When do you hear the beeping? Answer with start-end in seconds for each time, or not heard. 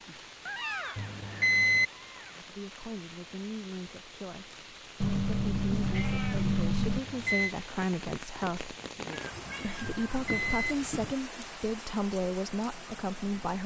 0.9-1.9, 6.8-7.5, 9.9-10.8.